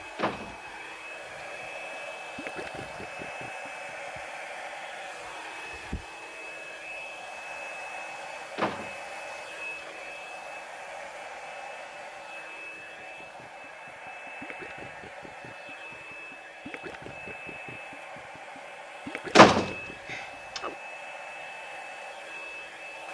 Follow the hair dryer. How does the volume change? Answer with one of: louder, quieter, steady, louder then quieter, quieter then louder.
steady.